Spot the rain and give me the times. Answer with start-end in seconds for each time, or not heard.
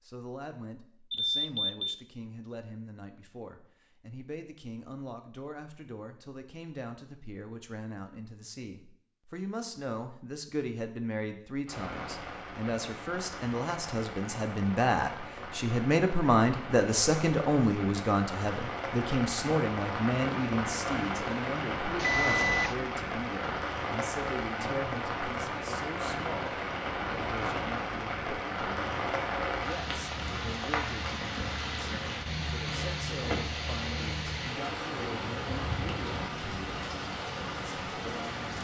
11.7-38.5.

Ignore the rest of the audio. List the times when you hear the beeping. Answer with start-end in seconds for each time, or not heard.
1.1-2.0, 21.9-22.8.